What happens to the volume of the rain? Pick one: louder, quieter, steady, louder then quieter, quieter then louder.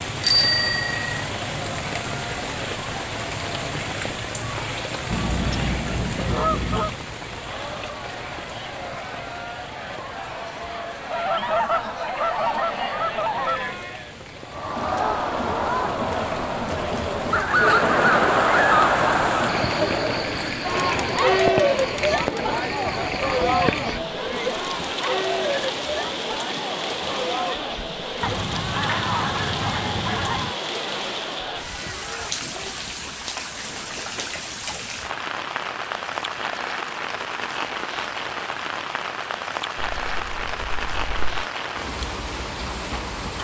quieter then louder.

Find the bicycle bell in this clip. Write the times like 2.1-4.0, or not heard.
0.2-1.2.